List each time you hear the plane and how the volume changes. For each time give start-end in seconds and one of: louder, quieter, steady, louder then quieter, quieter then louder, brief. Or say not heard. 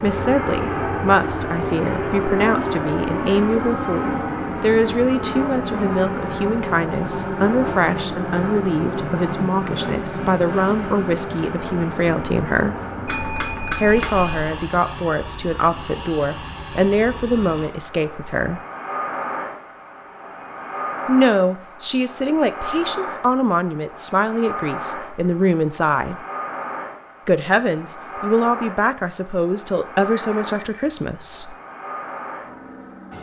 0.0-33.1 quieter.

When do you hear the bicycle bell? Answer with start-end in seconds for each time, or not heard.
13.1-14.5, 30.1-31.0.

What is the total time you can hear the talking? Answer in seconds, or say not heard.
27 s.